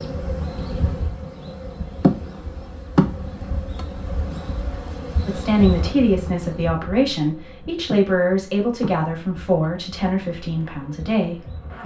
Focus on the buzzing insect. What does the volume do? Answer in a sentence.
The loudness of the buzzing insect goes down.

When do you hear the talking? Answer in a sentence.
The talking can be heard from 5.2 to 11.8 s.